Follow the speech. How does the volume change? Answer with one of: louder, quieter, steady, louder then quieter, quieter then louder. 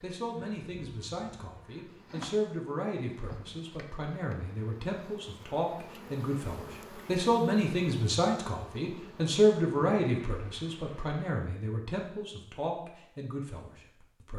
louder then quieter.